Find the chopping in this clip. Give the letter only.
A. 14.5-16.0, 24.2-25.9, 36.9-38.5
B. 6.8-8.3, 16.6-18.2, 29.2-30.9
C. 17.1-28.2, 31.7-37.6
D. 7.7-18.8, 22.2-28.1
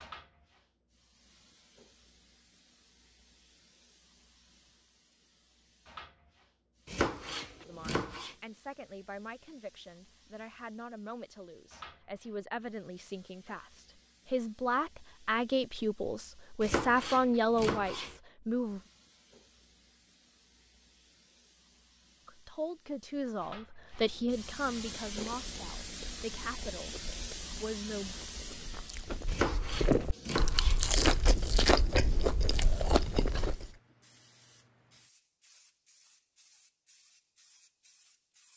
B.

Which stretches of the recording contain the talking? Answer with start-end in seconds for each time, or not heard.
7.7-18.8, 22.2-28.1.